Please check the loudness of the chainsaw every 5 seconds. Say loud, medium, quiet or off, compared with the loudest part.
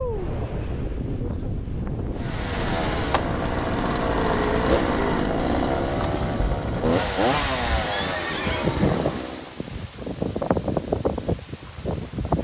loud, loud, off.